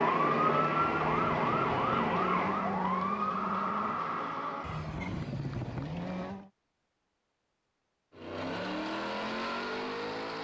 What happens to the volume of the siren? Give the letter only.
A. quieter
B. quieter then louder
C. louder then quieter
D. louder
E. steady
A.